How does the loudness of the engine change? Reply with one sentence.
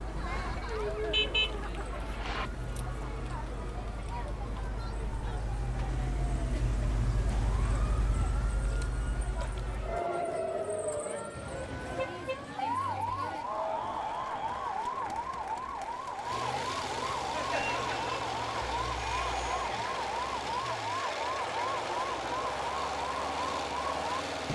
The volume of the engine goes up.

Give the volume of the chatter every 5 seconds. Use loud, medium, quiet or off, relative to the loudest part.
loud, medium, loud, loud, loud.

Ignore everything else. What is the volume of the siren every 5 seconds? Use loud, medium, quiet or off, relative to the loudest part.
medium, loud, loud, loud, loud.